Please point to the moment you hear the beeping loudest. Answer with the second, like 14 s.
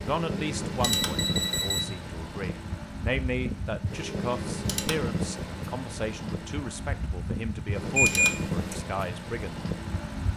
8 s.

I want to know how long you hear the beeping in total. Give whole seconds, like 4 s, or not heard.
2 s.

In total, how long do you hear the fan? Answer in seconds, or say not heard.
10 s.